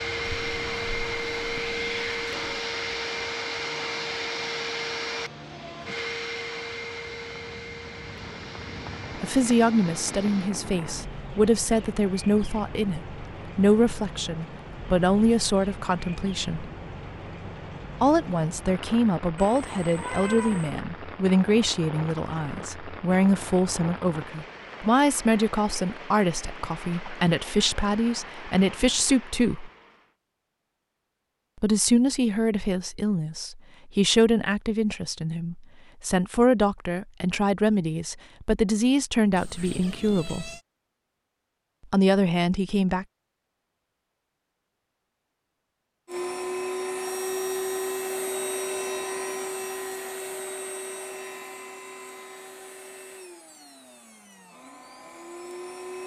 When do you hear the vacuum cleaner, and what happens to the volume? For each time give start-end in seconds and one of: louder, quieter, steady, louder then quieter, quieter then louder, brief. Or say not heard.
0.0-10.6 quieter
46.0-56.0 quieter.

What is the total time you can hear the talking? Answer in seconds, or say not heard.
29 s.